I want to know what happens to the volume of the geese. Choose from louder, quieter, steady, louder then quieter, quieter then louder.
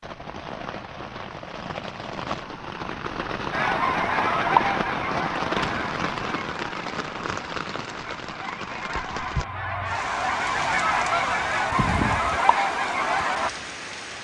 quieter then louder.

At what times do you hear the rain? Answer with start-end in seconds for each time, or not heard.
0.0-14.1.